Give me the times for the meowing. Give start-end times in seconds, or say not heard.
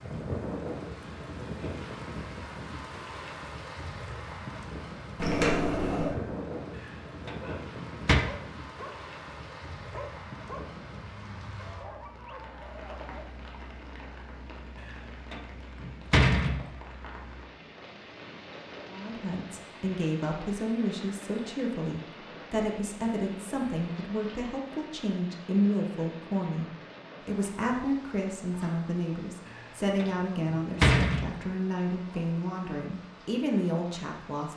5.2-6.2.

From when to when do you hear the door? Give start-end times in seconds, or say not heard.
6.8-8.2, 14.8-16.7, 29.6-31.4.